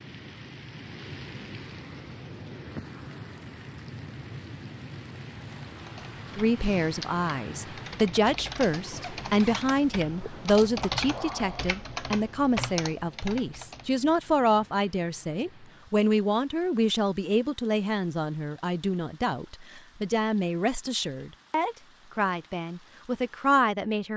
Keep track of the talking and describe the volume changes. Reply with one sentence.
The loudness of the talking stays about the same.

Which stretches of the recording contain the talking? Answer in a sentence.
You can hear the talking from 6.3 to 24.1 s.